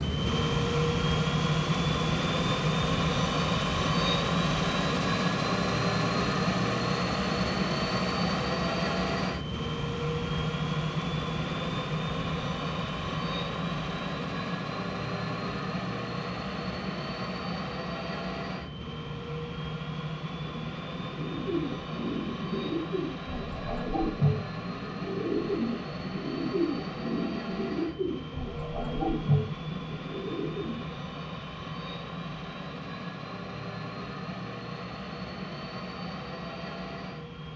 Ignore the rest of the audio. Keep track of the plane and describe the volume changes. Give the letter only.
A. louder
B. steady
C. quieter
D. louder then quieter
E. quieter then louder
C.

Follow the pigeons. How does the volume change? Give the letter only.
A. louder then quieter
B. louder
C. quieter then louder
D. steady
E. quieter
D.